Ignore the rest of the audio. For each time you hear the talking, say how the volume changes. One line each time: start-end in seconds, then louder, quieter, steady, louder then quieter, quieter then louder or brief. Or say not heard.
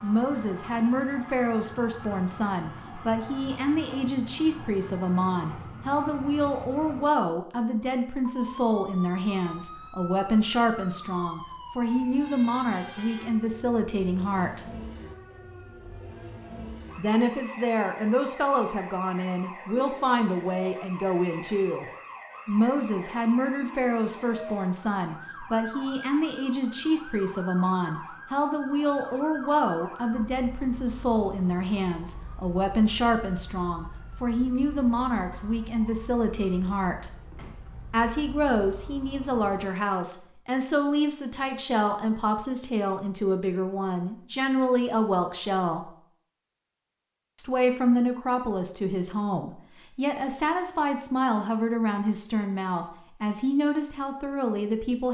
0.0-14.7 steady
16.9-21.9 steady
22.4-37.1 steady
37.9-45.9 steady
47.4-55.0 steady.